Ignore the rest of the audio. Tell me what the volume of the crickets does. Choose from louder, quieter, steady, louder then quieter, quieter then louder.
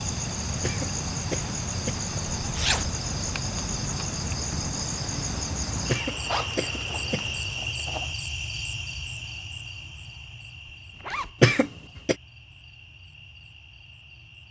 quieter.